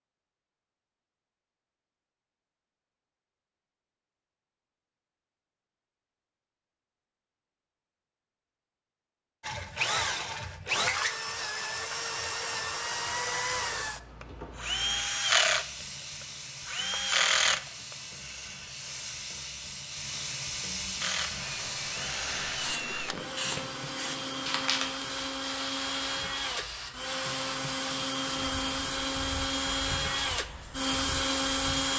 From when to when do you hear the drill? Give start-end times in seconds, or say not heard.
9.4-17.9, 21.0-31.9.